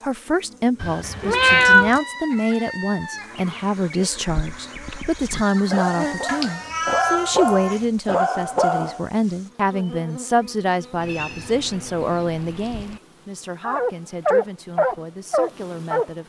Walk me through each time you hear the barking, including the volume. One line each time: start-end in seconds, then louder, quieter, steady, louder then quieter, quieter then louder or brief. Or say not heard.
4.0-9.1 louder
13.6-16.1 brief.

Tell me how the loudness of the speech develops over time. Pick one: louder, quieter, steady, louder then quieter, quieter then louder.
quieter.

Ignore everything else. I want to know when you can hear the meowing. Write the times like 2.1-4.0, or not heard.
0.8-1.9, 6.2-7.8, 10.9-13.0.